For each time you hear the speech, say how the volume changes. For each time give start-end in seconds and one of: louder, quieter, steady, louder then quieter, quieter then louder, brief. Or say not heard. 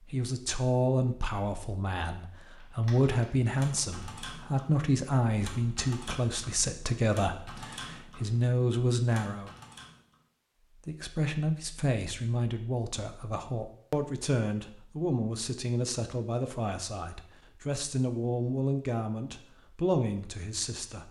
0.1-9.6 steady
10.8-21.0 steady.